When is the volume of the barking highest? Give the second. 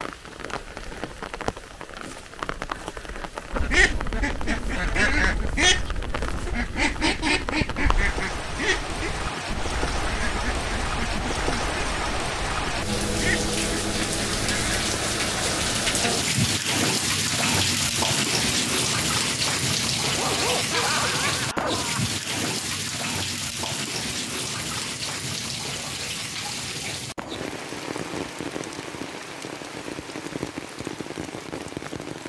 21 s.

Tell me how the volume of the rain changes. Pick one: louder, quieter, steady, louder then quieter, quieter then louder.
louder then quieter.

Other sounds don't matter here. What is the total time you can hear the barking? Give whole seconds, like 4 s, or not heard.
2 s.